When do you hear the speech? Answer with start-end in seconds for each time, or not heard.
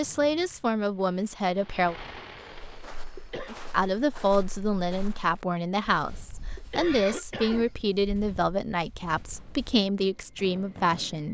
0.0-1.9, 3.5-11.2.